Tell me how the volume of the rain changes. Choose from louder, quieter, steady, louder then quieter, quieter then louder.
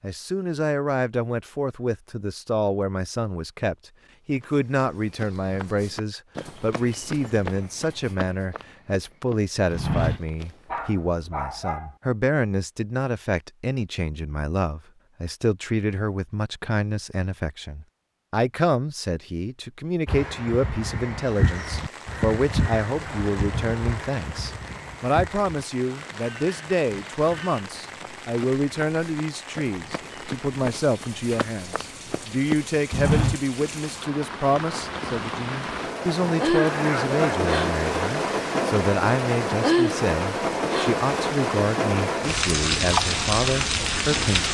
louder.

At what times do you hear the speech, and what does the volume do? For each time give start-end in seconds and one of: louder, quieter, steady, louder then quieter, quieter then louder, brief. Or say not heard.
0.0-44.4 steady.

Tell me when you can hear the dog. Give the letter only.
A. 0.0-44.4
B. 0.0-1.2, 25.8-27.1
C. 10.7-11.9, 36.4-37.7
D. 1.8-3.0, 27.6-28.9
C.